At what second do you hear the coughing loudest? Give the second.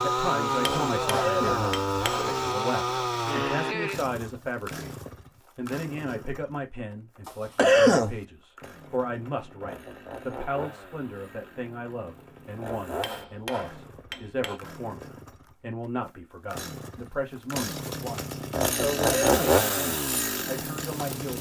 8 s.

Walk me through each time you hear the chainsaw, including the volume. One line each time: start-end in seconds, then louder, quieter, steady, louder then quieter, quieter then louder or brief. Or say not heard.
0.0-21.3 quieter then louder.